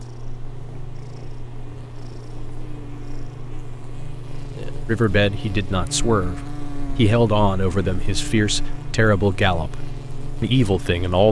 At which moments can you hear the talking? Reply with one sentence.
The talking can be heard from 4.8 to 11.2 s.